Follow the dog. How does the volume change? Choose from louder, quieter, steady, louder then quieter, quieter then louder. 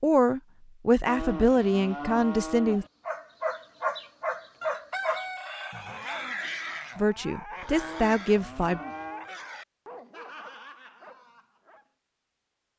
quieter.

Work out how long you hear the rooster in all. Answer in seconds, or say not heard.
2 s.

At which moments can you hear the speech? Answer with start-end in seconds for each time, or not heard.
0.0-2.9, 7.0-8.8.